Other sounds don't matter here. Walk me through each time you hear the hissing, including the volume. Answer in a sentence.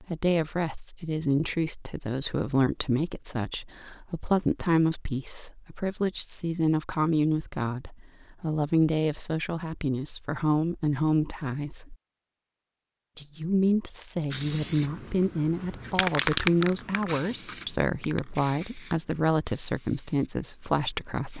You can hear the hissing from 14.3 to 21.3 s, getting louder then quieter.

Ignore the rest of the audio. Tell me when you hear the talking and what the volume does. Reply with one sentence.
The talking can be heard from 0.0 to 11.9 s, at a steady volume; and from 13.2 to 21.3 s, at a steady volume.